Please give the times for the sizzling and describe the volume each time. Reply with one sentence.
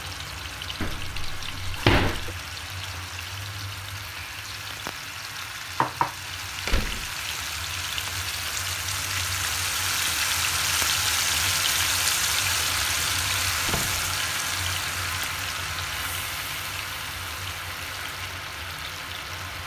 You can hear the sizzling from 0.0 to 19.6 s, getting louder then quieter.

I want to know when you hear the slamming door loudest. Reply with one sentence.
The loudest moment of the slamming door is at 2 seconds.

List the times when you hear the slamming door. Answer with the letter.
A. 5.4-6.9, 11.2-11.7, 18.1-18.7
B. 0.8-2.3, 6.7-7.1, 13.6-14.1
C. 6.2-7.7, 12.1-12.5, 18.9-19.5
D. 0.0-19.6
B.